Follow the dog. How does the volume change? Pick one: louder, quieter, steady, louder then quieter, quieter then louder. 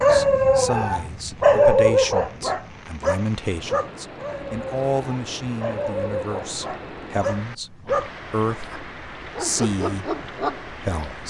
quieter.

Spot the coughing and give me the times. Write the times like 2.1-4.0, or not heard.
not heard.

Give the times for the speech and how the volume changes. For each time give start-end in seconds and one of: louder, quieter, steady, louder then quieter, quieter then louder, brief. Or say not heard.
0.0-11.2 steady.